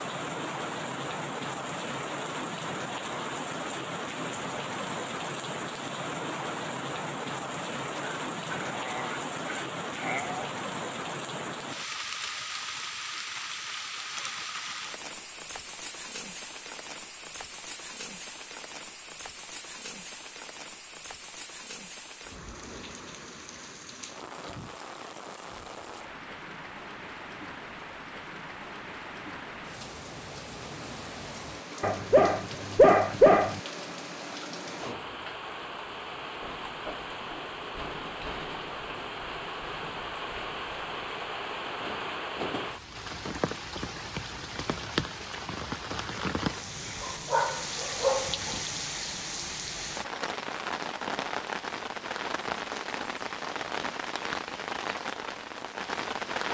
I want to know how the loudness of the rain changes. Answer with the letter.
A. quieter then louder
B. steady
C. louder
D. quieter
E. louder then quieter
A.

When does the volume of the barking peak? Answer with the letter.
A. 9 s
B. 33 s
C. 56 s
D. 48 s
B.